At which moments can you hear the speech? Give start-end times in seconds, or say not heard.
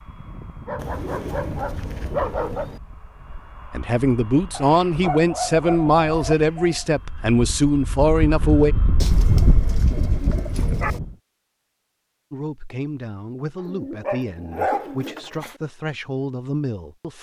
3.7-8.8, 12.3-17.1.